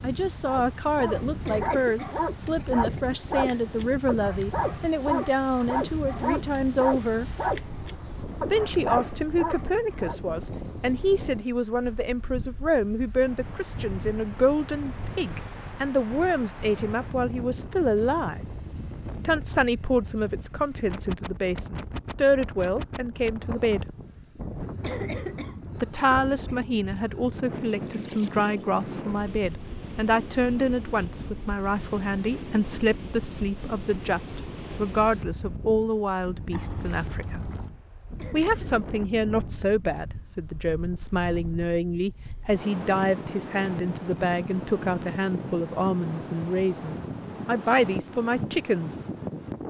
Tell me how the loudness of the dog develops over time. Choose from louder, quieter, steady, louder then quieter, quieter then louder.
steady.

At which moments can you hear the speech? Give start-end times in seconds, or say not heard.
0.0-7.3, 8.5-18.4, 19.2-23.9, 25.8-37.5, 38.3-49.0.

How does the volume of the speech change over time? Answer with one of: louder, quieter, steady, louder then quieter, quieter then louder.
steady.